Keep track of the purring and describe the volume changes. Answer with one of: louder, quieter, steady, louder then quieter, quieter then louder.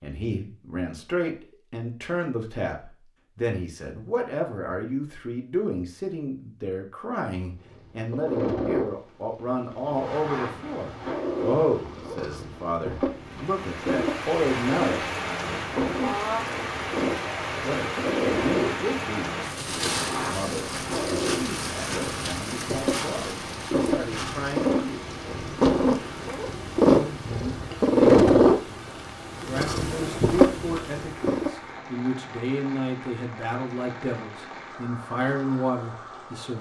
louder.